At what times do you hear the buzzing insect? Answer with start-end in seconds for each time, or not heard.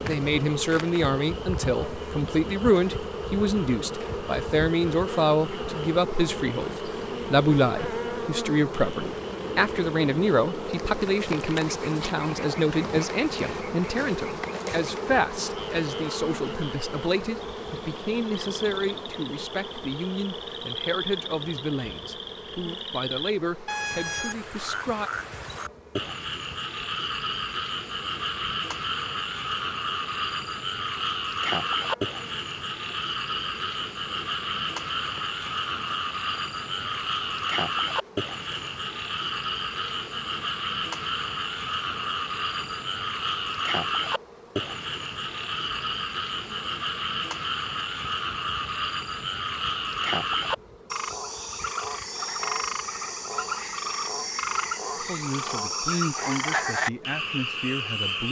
0.0-58.2.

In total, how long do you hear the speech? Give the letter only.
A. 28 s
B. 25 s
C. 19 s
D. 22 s
A.